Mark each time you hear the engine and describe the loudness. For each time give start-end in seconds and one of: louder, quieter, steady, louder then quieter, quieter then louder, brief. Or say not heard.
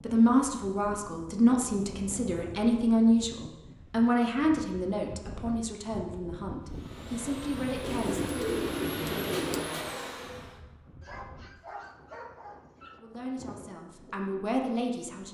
6.6-10.6 louder.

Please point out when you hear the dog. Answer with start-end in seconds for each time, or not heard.
11.0-13.0.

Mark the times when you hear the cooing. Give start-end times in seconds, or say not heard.
7.8-9.7.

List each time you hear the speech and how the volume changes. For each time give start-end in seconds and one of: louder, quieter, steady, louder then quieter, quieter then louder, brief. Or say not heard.
0.0-8.2 quieter
12.9-15.2 brief.